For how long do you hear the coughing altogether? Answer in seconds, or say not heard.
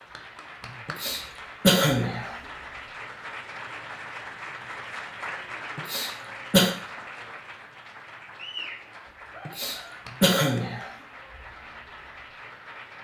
4 s.